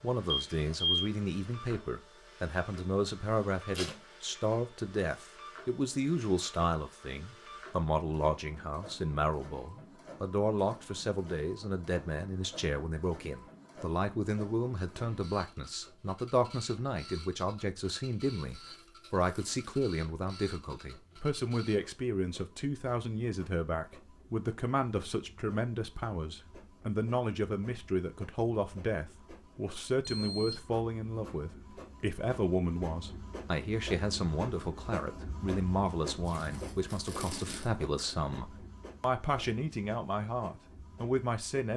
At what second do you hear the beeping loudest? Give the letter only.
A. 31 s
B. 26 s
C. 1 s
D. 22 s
C.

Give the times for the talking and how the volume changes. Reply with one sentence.
The talking can be heard from 0.0 to 41.7 s, at a steady volume.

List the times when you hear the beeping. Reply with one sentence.
You can hear the beeping from 0.3 to 1.1 s and from 30.0 to 30.6 s.